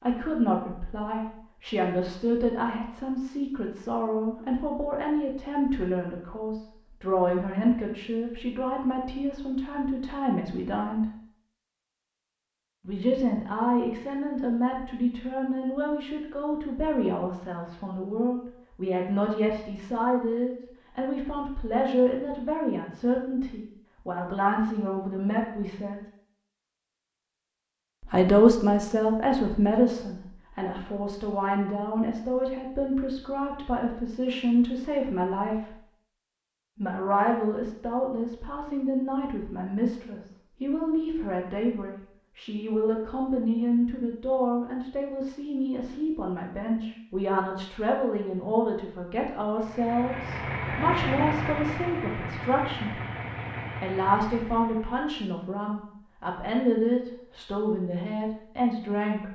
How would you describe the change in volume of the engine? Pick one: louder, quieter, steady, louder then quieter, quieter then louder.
quieter.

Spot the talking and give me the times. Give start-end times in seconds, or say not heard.
0.0-11.1, 12.8-26.0, 28.1-35.8, 36.8-53.0, 53.8-59.3.